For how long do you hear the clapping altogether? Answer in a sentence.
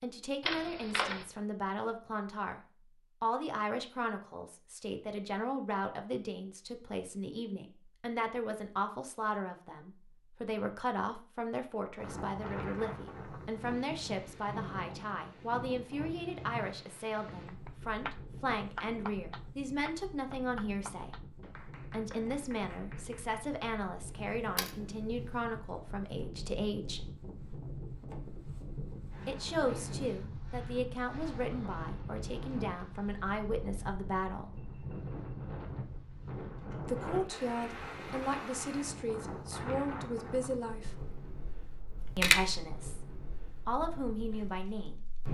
You can hear the clapping for 6 seconds altogether.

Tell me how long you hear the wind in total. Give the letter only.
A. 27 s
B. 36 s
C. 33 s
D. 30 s
C.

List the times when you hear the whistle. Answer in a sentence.
The whistle can't be heard in this clip.